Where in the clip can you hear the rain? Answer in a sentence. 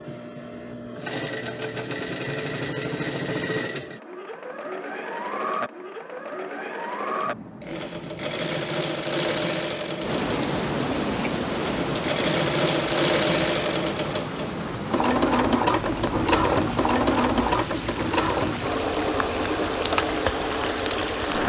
You can hear the rain from 10.0 to 21.4 s.